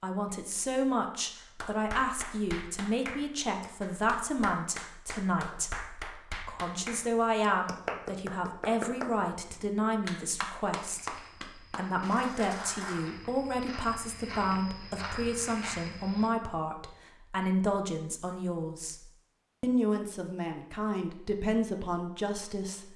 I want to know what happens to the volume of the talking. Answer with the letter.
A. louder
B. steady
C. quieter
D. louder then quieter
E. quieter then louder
B.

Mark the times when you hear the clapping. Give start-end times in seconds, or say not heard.
1.4-13.1.